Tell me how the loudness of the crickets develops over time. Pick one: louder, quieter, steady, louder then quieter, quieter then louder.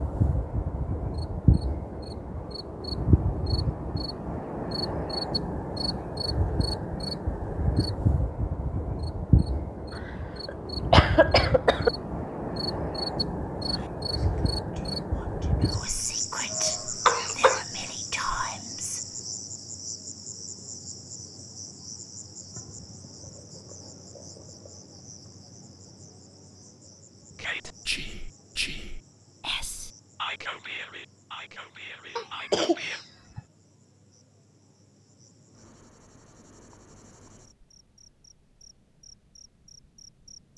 quieter.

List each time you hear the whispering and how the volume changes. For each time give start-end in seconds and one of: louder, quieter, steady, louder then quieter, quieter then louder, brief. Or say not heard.
13.6-19.2 louder
27.4-33.0 quieter.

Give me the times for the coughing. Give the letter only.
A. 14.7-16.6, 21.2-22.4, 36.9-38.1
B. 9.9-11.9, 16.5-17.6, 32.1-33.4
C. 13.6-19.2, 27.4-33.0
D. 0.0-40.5
B.